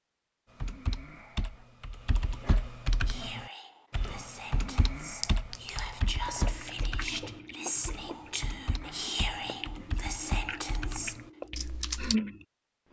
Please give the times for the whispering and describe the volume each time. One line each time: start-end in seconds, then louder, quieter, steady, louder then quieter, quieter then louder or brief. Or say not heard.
3.0-11.2 louder.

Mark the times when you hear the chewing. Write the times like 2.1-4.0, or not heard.
6.0-12.4.